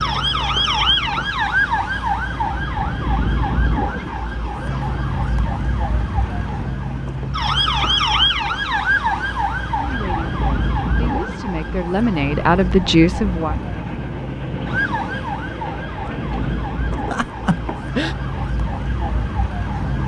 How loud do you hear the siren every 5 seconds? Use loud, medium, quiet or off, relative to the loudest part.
loud, loud, medium, medium.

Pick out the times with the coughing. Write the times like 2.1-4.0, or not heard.
17.1-18.1.